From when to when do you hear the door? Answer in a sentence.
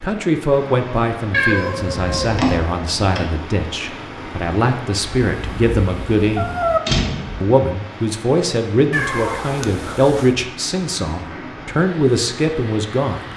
You can hear the door from 2.3 to 3.2 s and from 6.8 to 7.5 s.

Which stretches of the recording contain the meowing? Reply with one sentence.
You can hear the meowing from 1.3 to 2.6 s, from 5.2 to 6.8 s and from 8.9 to 10.3 s.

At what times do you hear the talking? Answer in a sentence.
The talking can be heard from 0.0 to 6.5 s and from 7.4 to 13.3 s.